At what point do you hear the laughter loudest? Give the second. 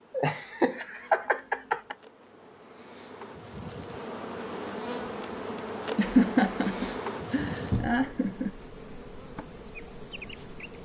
6 s.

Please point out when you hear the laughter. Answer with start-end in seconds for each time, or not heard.
0.1-1.9, 6.0-8.5.